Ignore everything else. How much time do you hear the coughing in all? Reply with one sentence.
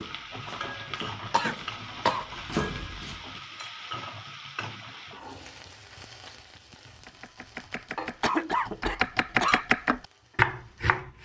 The coughing can be heard for 3 seconds in total.